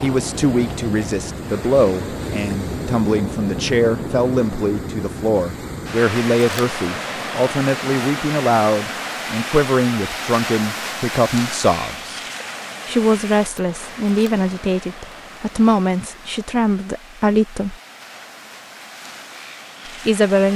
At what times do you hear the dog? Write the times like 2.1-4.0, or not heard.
not heard.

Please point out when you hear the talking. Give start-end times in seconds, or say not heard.
0.0-12.2, 12.8-17.8, 20.1-20.5.